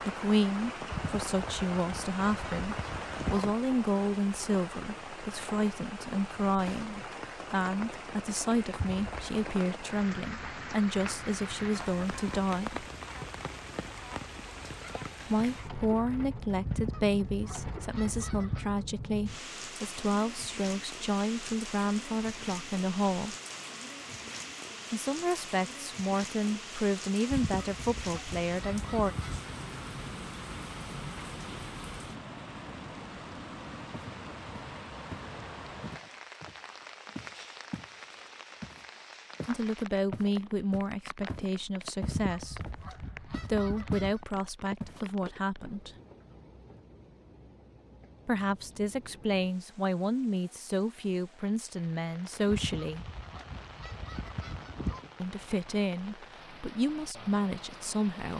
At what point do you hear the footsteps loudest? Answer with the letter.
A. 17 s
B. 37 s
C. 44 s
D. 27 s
C.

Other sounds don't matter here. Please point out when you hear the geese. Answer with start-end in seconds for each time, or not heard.
0.9-3.5, 16.6-18.7, 27.3-29.5, 42.0-44.2, 52.5-55.1.